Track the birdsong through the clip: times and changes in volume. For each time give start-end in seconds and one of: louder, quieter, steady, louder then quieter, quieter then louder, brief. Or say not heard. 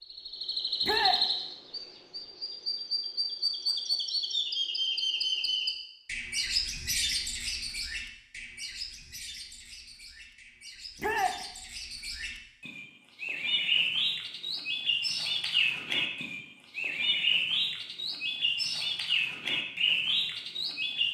0.0-21.0 quieter then louder.